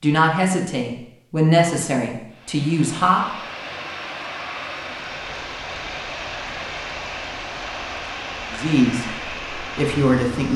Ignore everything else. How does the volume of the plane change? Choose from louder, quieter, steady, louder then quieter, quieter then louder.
steady.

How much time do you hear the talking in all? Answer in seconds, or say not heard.
5 s.